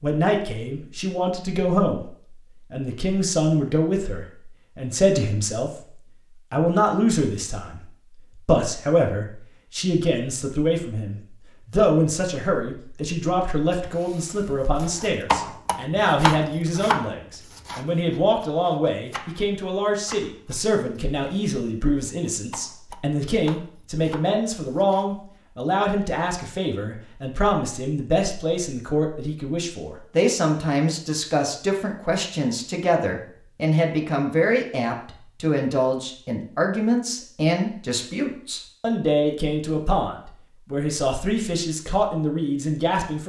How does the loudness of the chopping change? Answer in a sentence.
The volume of the chopping goes down.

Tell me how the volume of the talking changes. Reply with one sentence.
The volume of the talking stays about the same.